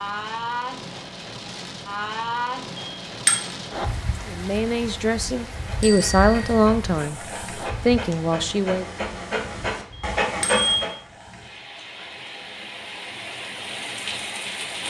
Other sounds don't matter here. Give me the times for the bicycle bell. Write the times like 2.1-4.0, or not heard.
2.8-3.4, 5.8-6.7, 9.9-10.8.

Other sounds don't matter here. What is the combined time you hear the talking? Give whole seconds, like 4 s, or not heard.
4 s.